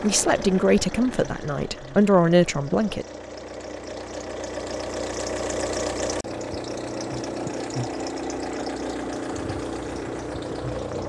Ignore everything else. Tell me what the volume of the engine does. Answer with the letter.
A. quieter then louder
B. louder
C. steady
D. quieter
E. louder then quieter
B.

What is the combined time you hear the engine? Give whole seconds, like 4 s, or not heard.
11 s.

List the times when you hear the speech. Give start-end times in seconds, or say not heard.
0.0-3.0.